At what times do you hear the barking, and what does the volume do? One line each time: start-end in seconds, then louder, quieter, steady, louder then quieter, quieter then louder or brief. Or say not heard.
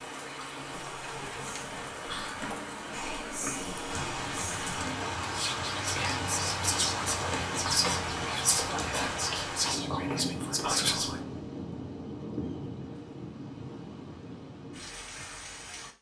not heard.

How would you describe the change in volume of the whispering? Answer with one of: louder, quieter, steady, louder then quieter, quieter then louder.
louder.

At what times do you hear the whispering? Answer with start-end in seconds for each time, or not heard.
0.7-11.2.